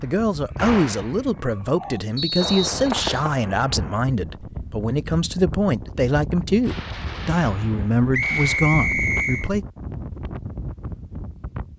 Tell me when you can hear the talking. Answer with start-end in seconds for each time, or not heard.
0.0-9.7.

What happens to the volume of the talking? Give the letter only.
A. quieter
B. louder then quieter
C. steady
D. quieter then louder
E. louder
C.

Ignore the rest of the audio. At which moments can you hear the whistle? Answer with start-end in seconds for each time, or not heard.
2.1-3.3, 8.1-9.5.